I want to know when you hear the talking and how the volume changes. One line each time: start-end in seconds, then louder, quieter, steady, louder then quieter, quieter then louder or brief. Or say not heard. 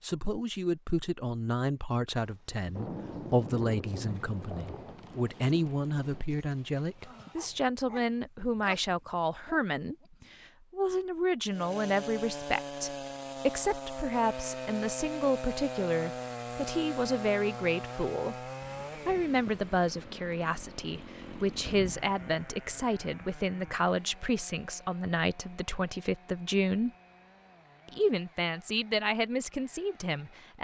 0.0-26.9 steady
27.9-30.6 brief.